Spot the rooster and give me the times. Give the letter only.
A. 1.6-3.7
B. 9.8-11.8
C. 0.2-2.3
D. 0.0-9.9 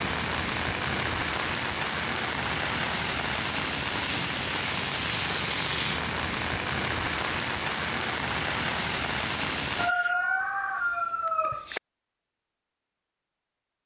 B.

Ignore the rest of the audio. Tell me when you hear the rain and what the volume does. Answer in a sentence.
The rain can be heard from 0.0 to 9.9 s, at a steady volume.